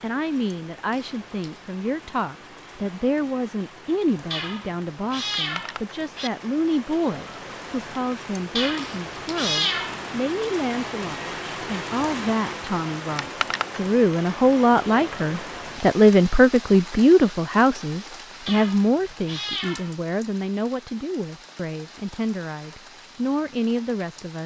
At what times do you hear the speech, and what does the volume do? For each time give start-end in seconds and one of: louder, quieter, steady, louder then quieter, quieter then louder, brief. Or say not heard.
0.0-24.4 louder then quieter.